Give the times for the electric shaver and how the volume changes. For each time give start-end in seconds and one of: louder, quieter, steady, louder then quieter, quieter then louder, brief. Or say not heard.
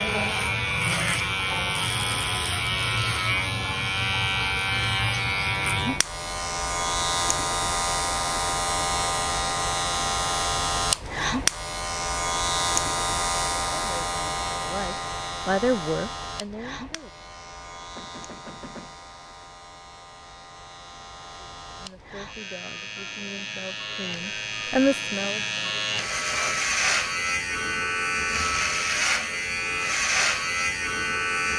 0.0-31.5 quieter then louder.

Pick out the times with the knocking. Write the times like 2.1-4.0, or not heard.
17.9-19.0.